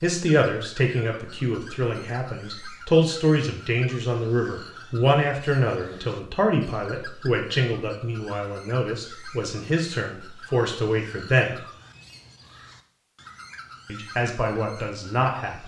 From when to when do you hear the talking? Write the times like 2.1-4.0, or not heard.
0.0-11.6, 13.8-15.6.